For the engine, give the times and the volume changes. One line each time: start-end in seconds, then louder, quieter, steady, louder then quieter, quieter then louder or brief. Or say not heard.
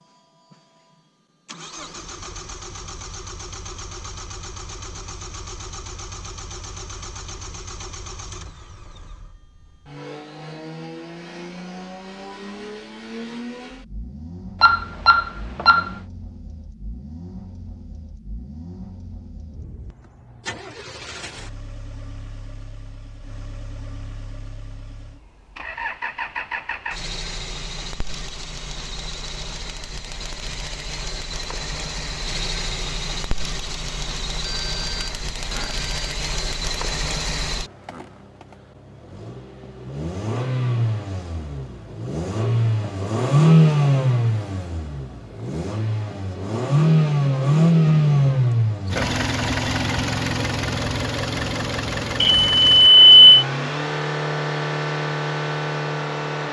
0.0-56.4 louder.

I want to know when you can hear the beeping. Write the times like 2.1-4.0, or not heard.
14.6-15.9, 34.5-35.7, 52.2-53.4.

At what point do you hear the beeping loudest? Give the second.
53 s.